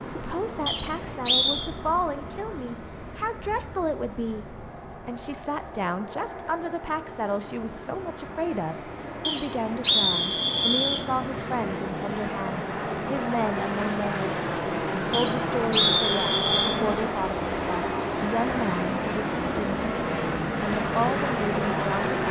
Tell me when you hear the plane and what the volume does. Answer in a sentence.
The plane can be heard from 0.0 to 22.2 s, getting louder.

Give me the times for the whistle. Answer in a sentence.
The whistle can be heard from 0.7 to 1.7 s, from 9.2 to 11.1 s and from 15.1 to 16.8 s.